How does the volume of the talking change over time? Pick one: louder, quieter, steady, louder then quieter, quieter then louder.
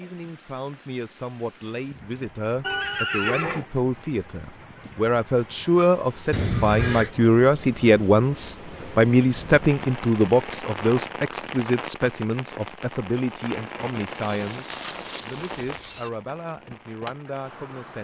louder then quieter.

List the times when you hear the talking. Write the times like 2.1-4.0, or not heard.
0.0-17.9.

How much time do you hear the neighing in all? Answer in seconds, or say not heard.
4 s.